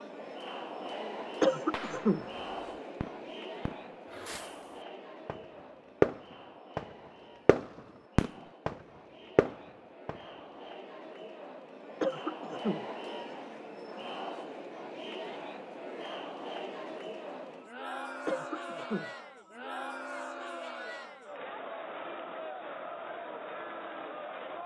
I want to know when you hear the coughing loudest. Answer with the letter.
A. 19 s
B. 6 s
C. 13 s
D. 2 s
D.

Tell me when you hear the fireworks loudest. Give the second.
6 s.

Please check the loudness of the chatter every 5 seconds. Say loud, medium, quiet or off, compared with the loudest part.
loud, medium, loud, loud, loud.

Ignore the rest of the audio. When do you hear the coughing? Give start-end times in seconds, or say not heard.
1.4-2.2, 12.0-12.8, 18.2-19.1.